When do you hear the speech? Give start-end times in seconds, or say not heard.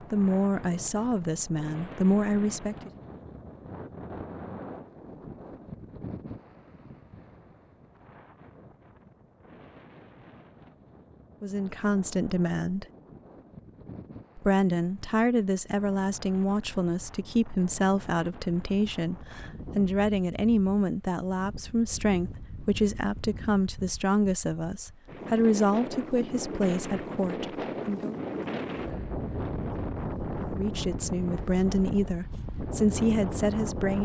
0.1-2.9, 11.4-12.8, 14.3-28.1, 30.5-33.9.